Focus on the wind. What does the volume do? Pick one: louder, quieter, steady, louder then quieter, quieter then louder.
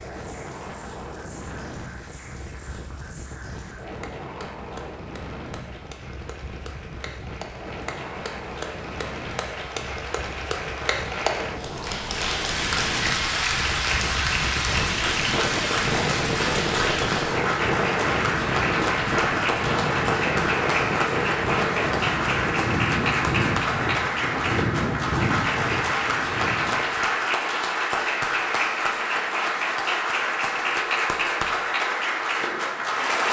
louder.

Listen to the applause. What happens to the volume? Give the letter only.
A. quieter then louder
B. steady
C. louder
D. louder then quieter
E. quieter
C.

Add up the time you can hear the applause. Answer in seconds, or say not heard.
33 s.